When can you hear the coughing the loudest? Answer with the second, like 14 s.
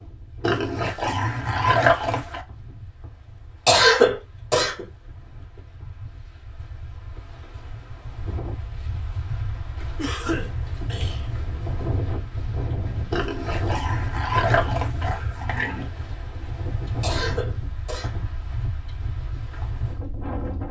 4 s.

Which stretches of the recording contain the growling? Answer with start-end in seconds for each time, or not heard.
0.4-2.4, 13.1-15.9.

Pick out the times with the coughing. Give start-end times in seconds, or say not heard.
3.6-4.8, 9.9-11.4, 17.0-18.2.